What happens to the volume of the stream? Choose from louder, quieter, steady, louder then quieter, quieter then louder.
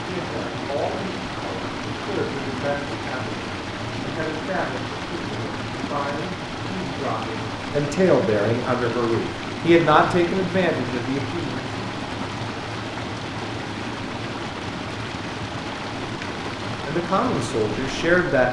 steady.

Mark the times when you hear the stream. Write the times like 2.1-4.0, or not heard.
0.0-18.4.